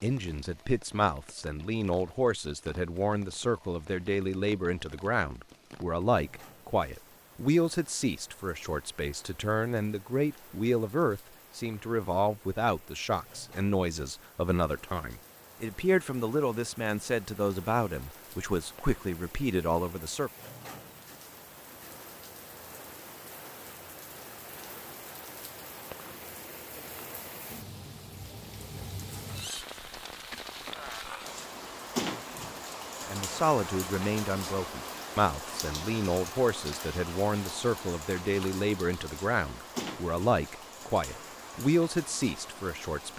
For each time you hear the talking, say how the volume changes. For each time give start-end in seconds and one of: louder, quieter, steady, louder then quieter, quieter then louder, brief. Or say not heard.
0.0-20.3 steady
33.0-43.1 steady.